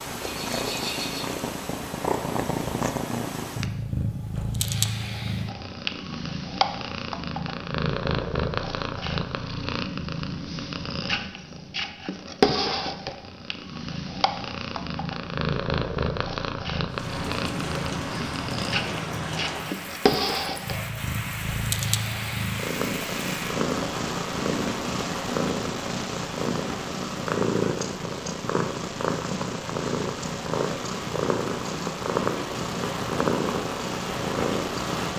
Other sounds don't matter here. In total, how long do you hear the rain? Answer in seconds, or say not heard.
18 s.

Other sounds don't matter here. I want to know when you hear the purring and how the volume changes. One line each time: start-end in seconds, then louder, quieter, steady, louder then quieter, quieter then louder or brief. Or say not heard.
0.0-35.1 steady.